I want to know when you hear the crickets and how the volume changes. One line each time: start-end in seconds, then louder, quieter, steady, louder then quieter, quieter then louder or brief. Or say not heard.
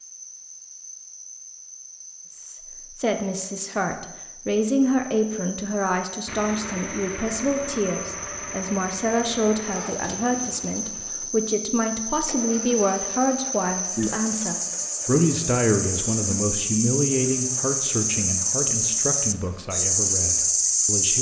0.0-21.1 louder.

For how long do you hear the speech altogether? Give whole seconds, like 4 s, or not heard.
19 s.